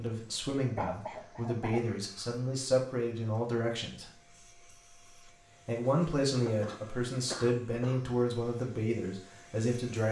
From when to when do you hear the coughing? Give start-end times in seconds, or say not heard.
0.8-1.8, 6.3-8.1.